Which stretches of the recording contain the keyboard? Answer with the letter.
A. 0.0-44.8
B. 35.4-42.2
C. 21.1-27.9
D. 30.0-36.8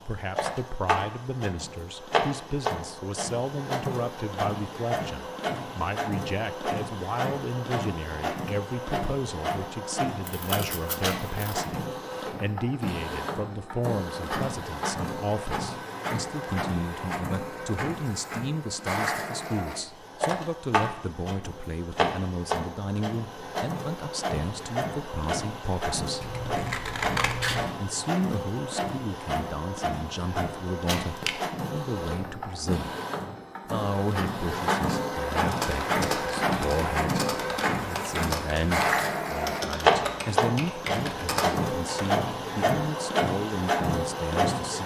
B.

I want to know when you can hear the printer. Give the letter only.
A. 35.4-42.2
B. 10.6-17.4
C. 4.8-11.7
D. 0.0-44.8
D.